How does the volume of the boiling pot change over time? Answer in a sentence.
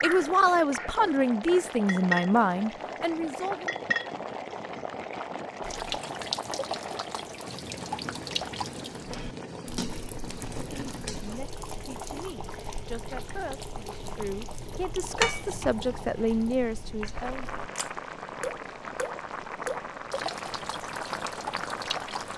The loudness of the boiling pot stays about the same.